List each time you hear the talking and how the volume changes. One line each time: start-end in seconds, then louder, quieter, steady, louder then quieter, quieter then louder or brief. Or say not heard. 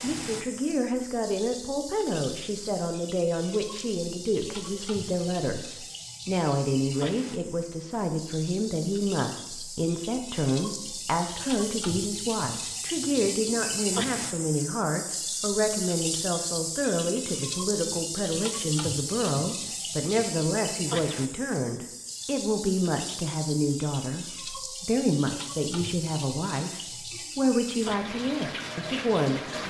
0.0-29.6 steady.